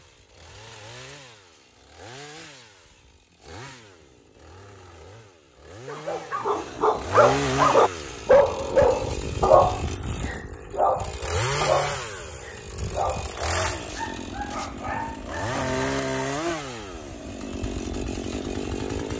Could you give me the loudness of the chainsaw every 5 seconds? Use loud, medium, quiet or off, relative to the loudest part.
quiet, loud, loud, loud.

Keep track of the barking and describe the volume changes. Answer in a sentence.
The volume of the barking goes down.